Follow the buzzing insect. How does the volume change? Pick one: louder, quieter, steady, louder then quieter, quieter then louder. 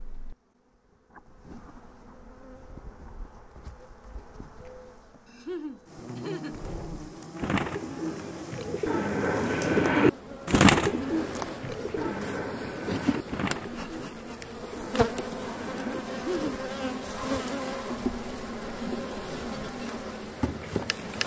louder.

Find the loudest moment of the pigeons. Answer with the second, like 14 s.
11 s.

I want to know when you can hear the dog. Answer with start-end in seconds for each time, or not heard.
not heard.